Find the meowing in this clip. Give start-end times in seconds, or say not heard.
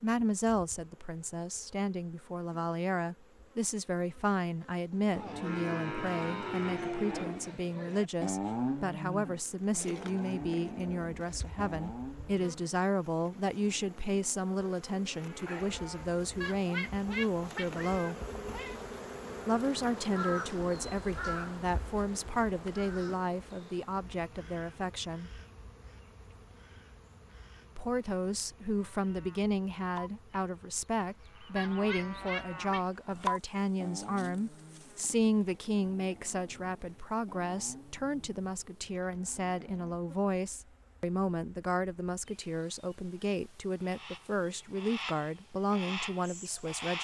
16.4-18.9, 31.6-32.9.